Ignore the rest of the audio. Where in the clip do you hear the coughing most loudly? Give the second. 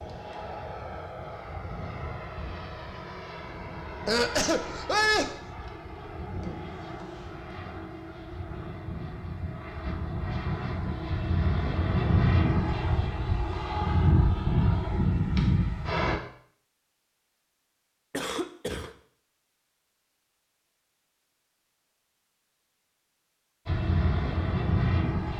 5 s.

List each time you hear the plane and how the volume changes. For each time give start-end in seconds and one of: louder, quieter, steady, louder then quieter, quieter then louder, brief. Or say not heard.
0.0-16.2 louder
23.6-25.3 brief.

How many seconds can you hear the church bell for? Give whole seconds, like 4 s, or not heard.
not heard.